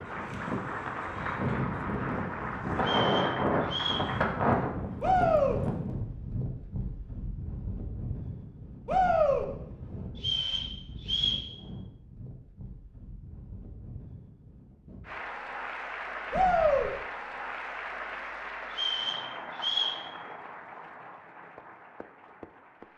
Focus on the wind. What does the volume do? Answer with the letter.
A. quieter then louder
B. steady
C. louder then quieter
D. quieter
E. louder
D.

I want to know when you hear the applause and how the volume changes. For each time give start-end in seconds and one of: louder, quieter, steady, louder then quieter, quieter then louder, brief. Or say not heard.
0.0-4.3 steady
15.0-22.9 quieter.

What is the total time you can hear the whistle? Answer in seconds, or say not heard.
4 s.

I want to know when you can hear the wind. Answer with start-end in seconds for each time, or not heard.
0.0-15.1.